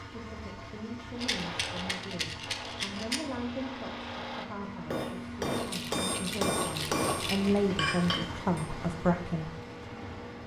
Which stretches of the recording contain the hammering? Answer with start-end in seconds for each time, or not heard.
1.1-8.7.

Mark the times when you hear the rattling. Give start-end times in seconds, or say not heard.
1.2-3.2, 5.5-8.2.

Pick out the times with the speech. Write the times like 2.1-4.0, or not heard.
0.1-9.6.